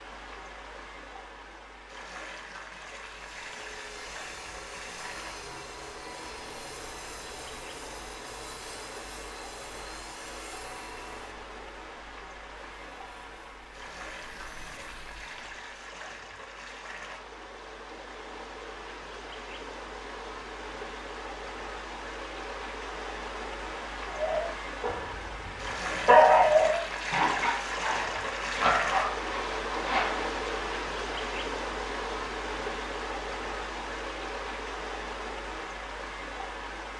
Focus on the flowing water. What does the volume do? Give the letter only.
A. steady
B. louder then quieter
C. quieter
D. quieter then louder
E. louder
E.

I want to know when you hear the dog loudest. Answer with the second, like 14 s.
26 s.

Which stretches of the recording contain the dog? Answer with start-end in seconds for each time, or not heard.
24.1-30.3.